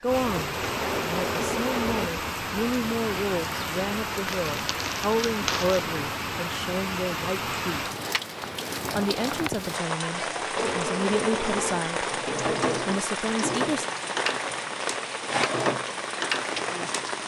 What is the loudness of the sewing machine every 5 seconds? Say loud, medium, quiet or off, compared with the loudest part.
loud, off, loud, loud.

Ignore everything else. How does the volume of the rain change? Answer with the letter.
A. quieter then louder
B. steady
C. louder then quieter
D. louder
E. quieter
B.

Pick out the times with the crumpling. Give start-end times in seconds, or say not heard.
4.2-6.0.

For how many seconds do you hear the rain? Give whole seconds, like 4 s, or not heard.
17 s.